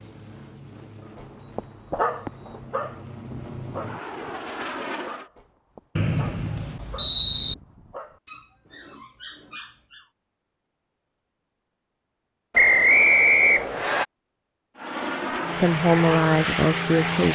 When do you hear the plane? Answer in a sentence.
The plane can be heard from 0.0 to 5.3 s and from 14.8 to 17.3 s.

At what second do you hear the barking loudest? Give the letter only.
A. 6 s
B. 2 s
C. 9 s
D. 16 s
B.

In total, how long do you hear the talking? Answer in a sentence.
The talking can be heard for 2 seconds in total.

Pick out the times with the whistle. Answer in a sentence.
You can hear the whistle from 1.4 to 2.6 s, from 6.0 to 7.5 s and from 12.6 to 14.1 s.